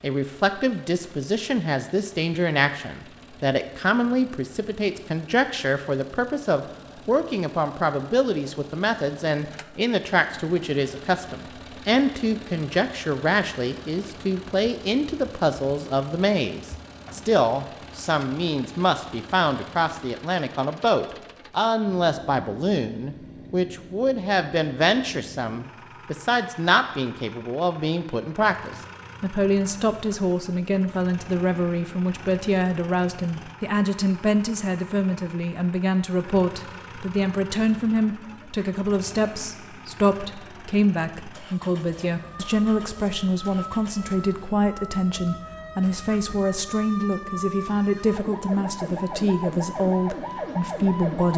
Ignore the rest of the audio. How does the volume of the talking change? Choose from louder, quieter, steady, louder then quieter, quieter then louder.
steady.